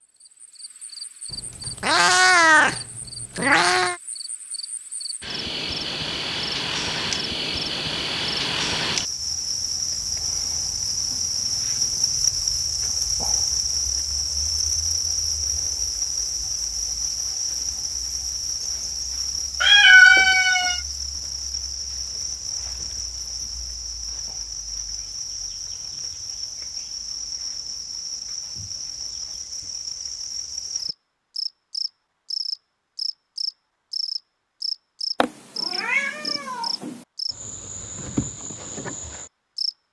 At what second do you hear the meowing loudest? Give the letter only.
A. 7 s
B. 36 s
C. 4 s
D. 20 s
D.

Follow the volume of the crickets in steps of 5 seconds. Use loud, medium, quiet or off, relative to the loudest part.
quiet, loud, loud, loud, medium, medium, medium, medium.